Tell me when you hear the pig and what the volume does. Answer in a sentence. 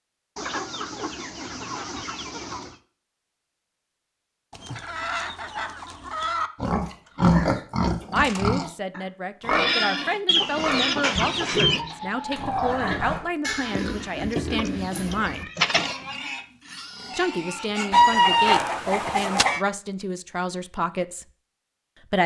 You can hear the pig from 6.6 to 18.1 s, getting quieter.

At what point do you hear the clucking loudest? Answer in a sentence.
The volume of the clucking peaks at 18 seconds.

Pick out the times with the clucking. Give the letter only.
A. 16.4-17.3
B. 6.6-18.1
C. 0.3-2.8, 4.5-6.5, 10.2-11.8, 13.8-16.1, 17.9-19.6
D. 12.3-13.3
C.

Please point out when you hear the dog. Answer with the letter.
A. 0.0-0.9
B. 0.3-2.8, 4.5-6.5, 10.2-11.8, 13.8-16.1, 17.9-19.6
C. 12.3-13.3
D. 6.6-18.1
C.